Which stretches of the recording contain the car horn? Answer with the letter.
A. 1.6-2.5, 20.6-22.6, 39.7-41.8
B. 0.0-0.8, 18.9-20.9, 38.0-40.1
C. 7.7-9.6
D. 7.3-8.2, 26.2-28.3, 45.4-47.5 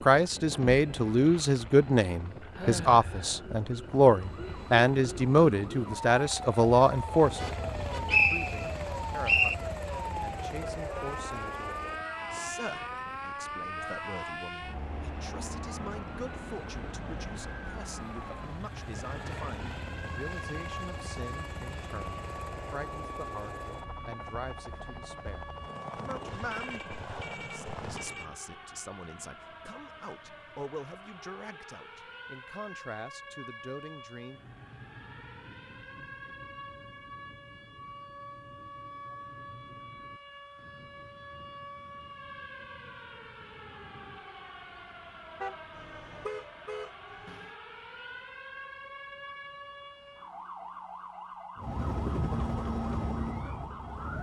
D.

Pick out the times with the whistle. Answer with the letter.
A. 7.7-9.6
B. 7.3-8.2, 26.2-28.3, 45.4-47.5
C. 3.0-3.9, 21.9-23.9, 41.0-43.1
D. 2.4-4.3
A.